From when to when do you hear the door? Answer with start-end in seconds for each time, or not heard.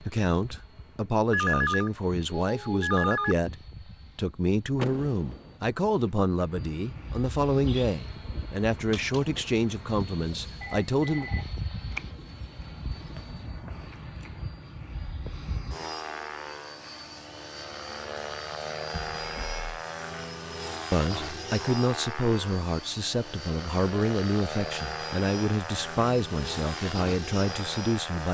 4.8-5.5.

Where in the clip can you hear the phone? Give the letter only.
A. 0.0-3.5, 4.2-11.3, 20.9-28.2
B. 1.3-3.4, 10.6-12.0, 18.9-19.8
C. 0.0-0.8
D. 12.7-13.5
B.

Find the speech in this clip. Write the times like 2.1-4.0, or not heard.
0.0-3.5, 4.2-11.3, 20.9-28.2.